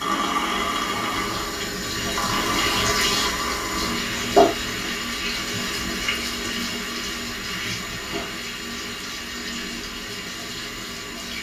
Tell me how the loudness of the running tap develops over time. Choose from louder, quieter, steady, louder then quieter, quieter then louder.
louder then quieter.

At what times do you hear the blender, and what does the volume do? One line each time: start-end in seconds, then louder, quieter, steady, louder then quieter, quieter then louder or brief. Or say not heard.
0.0-11.3 quieter.